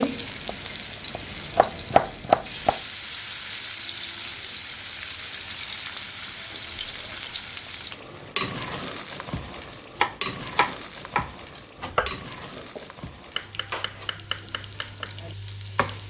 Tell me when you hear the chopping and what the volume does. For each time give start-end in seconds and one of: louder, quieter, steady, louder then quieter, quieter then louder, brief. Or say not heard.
0.0-2.8 brief
9.9-16.0 quieter.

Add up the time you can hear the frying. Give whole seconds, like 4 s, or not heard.
16 s.